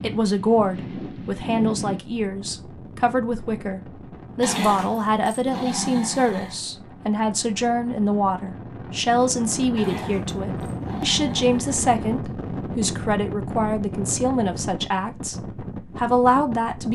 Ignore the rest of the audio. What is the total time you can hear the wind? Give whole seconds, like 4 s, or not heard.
17 s.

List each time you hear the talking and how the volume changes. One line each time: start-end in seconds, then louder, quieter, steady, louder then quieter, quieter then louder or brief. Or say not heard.
0.0-16.9 steady.